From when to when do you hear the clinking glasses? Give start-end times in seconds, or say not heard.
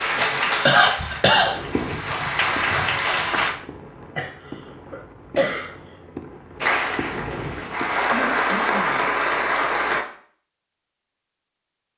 not heard.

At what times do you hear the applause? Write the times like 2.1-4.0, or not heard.
0.0-3.5, 6.6-10.1.